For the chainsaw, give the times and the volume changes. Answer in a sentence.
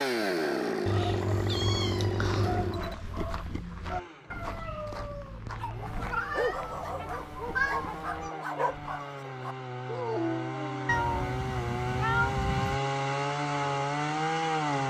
The chainsaw can be heard from 0.0 to 14.8 s, getting quieter then louder.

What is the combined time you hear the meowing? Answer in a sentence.
The meowing can be heard for 6 seconds in total.